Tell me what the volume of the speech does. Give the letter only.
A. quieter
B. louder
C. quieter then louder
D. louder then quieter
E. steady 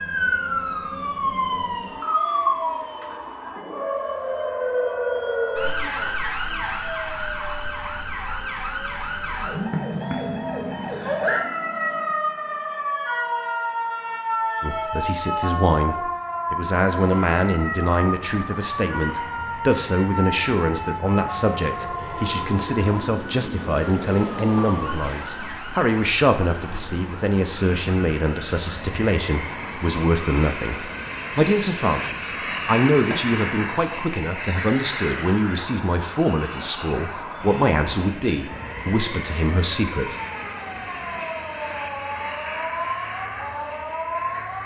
E.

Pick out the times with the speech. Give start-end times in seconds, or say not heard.
14.6-40.1.